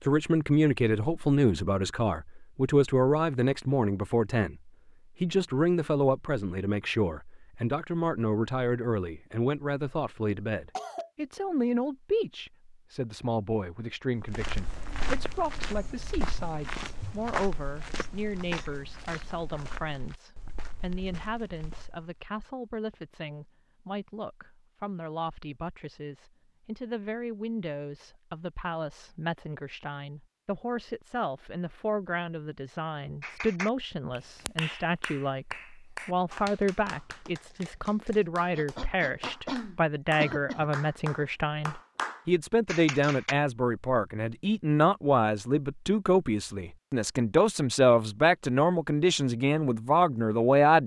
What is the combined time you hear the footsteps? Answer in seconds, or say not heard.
8 s.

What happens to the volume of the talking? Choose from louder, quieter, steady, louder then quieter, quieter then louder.
quieter then louder.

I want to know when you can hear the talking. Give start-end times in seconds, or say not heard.
0.1-50.8.